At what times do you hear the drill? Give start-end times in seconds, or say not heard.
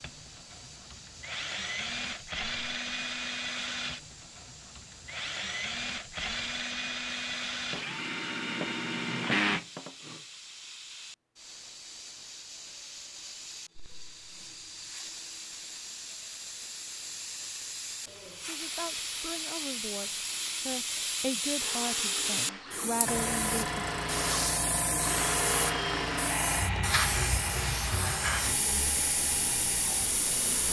0.0-10.2, 21.6-30.6.